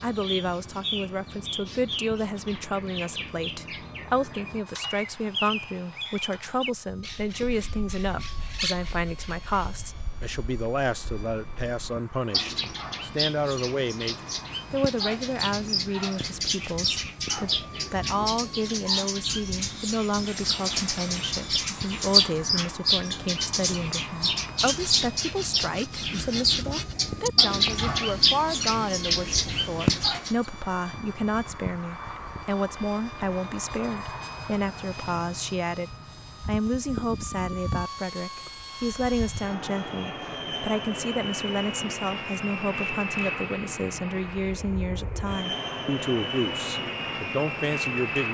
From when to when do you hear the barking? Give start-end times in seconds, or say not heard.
not heard.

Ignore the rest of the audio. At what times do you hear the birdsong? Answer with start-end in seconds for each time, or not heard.
0.0-30.4.